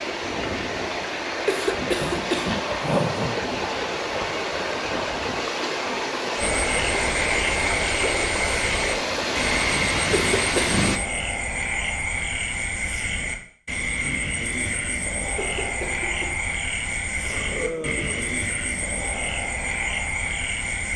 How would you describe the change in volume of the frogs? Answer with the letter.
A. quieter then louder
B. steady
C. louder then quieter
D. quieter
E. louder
B.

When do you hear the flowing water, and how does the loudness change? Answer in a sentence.
The flowing water can be heard from 0.0 to 11.0 s, at a steady volume.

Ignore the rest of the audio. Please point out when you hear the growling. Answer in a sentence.
The growling can be heard from 2.0 to 3.5 s, from 10.1 to 11.1 s and from 17.2 to 18.4 s.